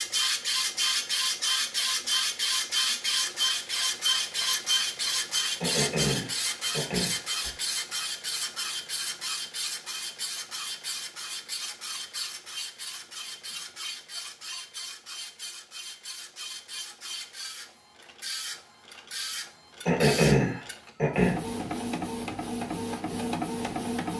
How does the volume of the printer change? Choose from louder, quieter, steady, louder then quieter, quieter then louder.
quieter then louder.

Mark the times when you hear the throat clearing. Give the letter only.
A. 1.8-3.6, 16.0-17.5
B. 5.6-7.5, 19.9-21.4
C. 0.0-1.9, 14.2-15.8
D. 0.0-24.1
B.